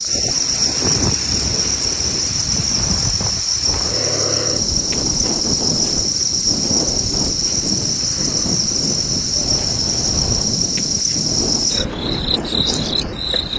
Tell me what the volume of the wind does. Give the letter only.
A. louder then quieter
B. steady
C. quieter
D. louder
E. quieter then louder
B.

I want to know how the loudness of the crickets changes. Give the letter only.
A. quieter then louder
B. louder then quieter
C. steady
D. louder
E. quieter
C.